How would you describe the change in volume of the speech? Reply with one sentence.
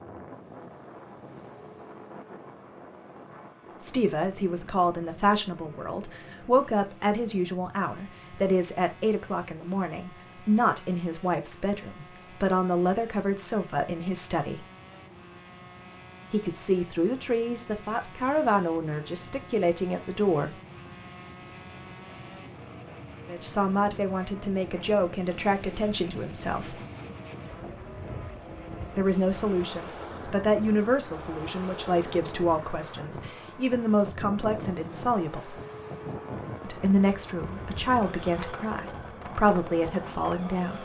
The loudness of the speech stays about the same.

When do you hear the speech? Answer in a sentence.
You can hear the speech from 3.8 to 14.7 s, from 16.3 to 20.5 s, from 23.2 to 26.8 s, from 28.9 to 35.6 s and from 36.6 to 40.8 s.